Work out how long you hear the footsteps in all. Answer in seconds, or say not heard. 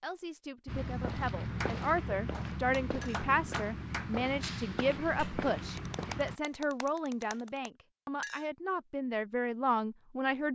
6 s.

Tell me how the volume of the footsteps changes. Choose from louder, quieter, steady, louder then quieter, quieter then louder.
steady.